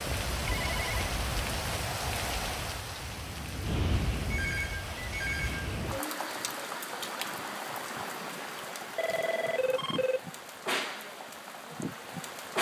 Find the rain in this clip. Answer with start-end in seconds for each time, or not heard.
0.0-12.5.